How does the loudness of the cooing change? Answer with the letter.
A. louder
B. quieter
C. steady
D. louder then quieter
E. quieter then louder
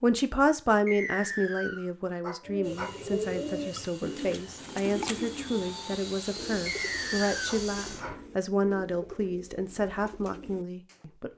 B.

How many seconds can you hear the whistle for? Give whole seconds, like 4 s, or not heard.
2 s.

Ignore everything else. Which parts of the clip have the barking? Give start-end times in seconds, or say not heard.
2.2-3.0, 7.5-8.2.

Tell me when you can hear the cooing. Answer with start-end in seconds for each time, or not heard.
2.5-11.1.